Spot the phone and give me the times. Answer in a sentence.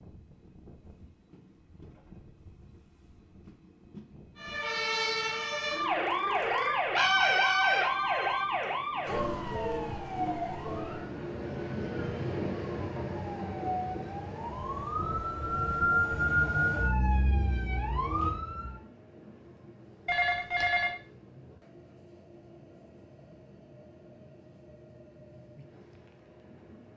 You can hear the phone from 7.0 to 8.6 s and from 20.1 to 21.0 s.